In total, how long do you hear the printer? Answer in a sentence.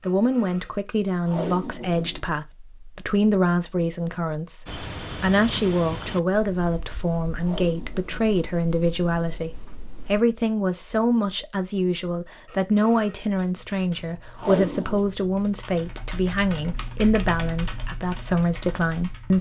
You can't hear the printer here.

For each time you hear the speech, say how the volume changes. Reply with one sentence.
You can hear the speech from 0.0 to 19.3 s, at a steady volume.